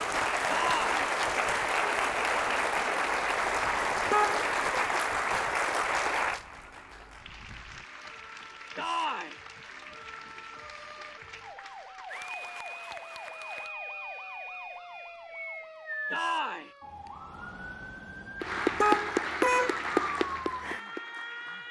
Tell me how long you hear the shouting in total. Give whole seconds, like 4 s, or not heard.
2 s.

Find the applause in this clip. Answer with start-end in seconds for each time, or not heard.
0.0-13.8, 18.4-21.6.